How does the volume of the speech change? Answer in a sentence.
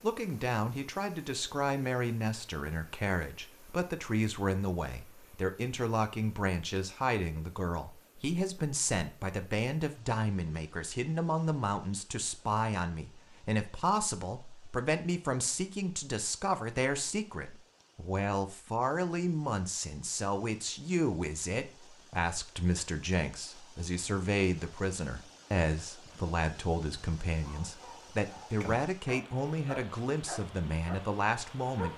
The loudness of the speech stays about the same.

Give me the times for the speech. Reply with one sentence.
The speech can be heard from 0.0 to 31.9 s.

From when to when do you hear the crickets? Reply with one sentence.
You can't hear the crickets here.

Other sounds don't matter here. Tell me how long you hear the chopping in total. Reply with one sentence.
The chopping can't be heard in this clip.